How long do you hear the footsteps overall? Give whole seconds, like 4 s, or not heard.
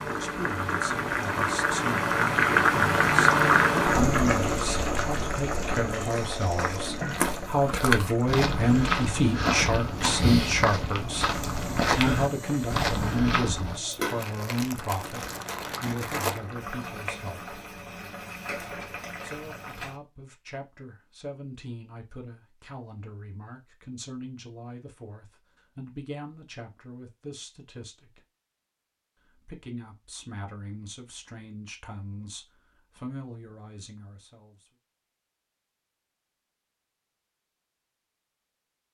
8 s.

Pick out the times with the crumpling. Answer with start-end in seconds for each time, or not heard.
13.9-16.4.